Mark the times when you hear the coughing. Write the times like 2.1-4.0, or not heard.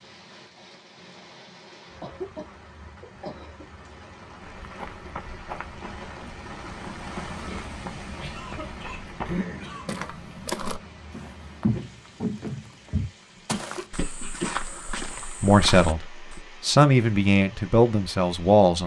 2.0-3.6, 7.4-9.9, 13.5-14.6.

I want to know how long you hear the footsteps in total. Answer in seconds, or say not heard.
12 s.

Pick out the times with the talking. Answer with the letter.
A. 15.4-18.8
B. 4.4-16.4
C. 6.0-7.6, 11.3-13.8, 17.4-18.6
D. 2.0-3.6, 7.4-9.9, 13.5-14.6
A.